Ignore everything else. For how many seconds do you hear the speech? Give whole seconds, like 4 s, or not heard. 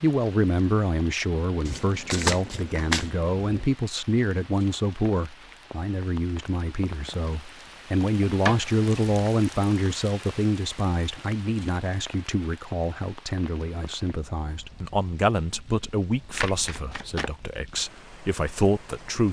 19 s.